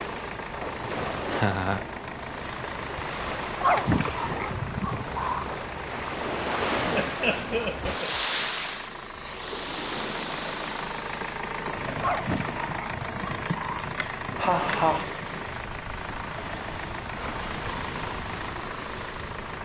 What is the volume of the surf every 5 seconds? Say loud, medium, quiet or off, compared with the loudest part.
loud, loud, medium, medium.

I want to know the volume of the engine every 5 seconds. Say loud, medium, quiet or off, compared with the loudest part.
loud, medium, loud, loud.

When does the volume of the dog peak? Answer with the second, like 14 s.
4 s.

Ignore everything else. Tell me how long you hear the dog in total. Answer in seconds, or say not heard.
4 s.